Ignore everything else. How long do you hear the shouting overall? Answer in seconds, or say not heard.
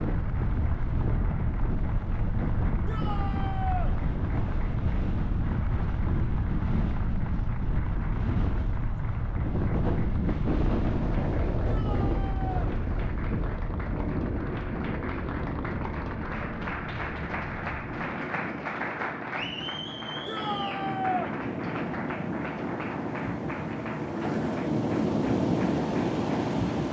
3 s.